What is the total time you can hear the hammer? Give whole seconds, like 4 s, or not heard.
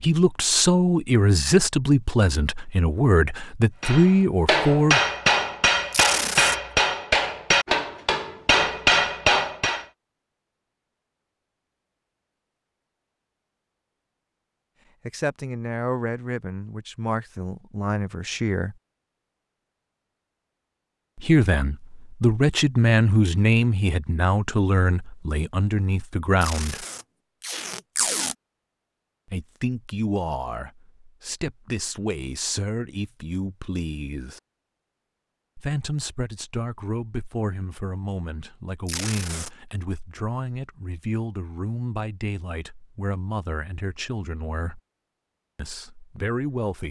6 s.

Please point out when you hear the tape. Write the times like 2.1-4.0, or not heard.
5.9-6.5, 26.4-28.4, 38.9-39.5.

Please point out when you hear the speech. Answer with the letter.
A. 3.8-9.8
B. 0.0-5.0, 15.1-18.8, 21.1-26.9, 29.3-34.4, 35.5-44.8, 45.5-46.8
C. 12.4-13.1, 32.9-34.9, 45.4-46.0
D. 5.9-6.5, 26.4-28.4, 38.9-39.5
B.